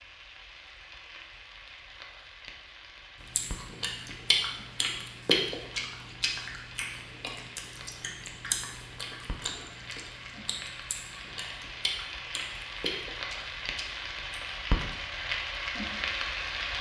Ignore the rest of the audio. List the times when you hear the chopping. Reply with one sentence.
You can't hear the chopping here.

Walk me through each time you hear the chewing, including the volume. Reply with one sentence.
The chewing can be heard from 3.4 to 14.7 s, getting quieter.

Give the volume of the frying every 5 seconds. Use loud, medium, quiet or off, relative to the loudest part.
quiet, quiet, medium, loud.